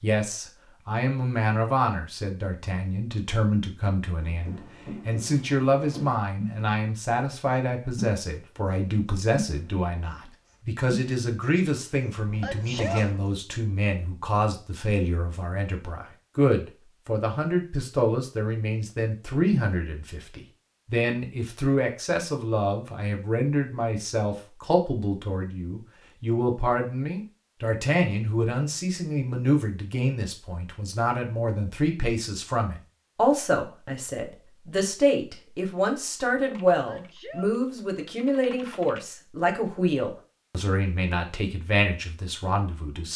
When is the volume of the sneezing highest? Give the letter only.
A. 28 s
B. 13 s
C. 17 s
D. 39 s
B.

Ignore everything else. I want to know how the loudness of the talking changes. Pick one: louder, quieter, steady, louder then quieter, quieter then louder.
steady.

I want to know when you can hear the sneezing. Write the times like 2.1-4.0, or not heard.
12.4-13.2, 36.9-37.6.